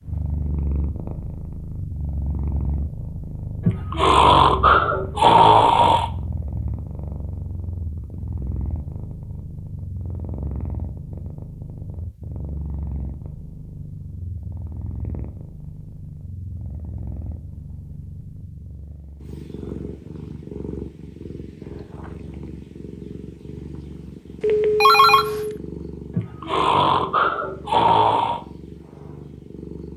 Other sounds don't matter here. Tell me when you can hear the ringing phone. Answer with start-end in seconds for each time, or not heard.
24.4-25.6.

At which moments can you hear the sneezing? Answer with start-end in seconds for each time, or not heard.
3.6-6.1, 26.1-28.4.